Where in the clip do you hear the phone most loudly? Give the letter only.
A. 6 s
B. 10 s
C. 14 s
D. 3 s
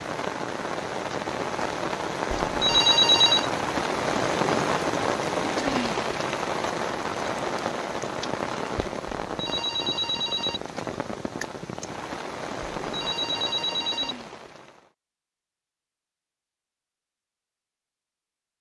D.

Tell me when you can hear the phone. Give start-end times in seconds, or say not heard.
2.5-3.5, 9.2-10.6, 12.8-14.2.